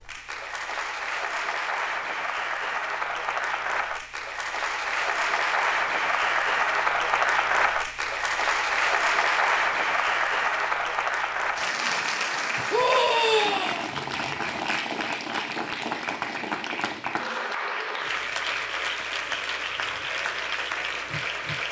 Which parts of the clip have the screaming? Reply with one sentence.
The screaming can be heard from 12.7 to 13.8 s.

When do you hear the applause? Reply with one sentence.
The applause can be heard from 0.0 to 21.6 s.